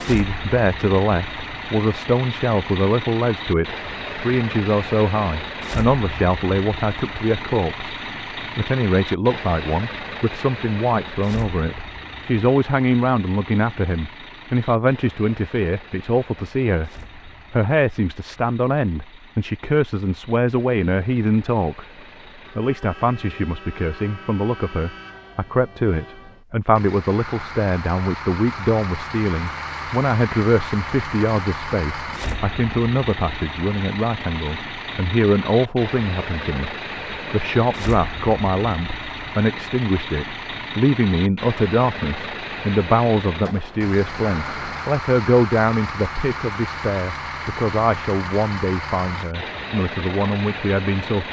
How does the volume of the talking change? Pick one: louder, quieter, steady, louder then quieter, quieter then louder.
steady.